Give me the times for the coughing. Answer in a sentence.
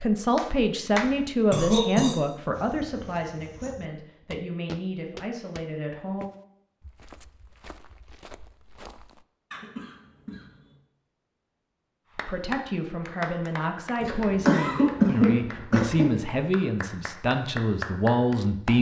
The coughing can be heard from 1.5 to 2.1 s, from 9.5 to 10.8 s and from 14.0 to 16.1 s.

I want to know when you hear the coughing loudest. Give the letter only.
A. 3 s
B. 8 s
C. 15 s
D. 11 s
C.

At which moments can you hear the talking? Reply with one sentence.
You can hear the talking from 0.0 to 6.2 s and from 12.2 to 18.7 s.